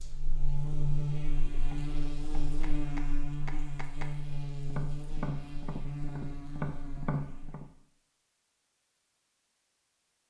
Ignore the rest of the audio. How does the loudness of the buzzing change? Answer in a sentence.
The loudness of the buzzing goes down.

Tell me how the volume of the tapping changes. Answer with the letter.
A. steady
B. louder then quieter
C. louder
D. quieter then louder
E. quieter
C.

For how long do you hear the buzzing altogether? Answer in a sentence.
The buzzing can be heard for 8 seconds in total.